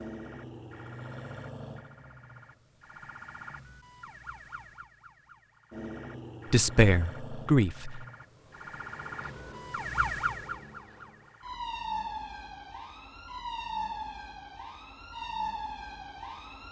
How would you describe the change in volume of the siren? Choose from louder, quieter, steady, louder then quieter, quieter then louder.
louder.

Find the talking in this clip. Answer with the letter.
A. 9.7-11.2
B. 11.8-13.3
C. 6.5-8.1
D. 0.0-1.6
C.